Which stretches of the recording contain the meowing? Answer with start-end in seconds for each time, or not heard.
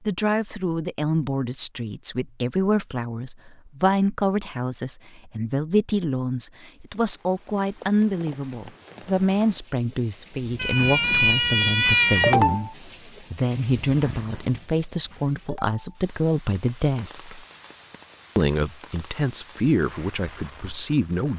10.6-12.6.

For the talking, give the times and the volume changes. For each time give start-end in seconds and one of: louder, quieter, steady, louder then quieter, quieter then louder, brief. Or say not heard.
0.1-17.4 steady
18.4-21.3 brief.